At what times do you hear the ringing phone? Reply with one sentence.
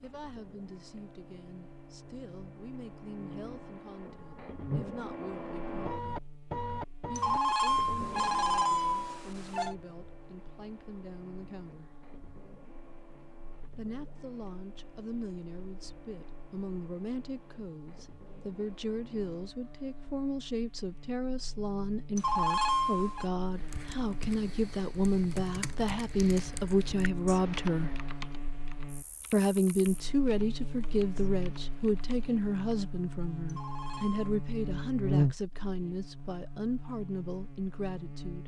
The ringing phone can be heard from 7.2 to 9.8 s, from 22.1 to 23.3 s and from 33.5 to 34.4 s.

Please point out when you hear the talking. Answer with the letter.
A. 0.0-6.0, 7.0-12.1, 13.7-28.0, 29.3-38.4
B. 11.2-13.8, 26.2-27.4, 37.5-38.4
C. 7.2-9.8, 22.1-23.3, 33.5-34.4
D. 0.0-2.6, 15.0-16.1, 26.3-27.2
A.